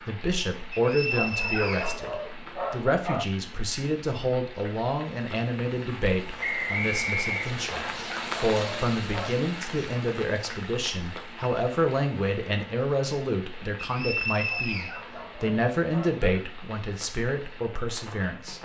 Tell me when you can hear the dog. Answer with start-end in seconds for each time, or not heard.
1.1-3.3, 7.8-9.3, 14.4-16.3.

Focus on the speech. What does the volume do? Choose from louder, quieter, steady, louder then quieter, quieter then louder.
steady.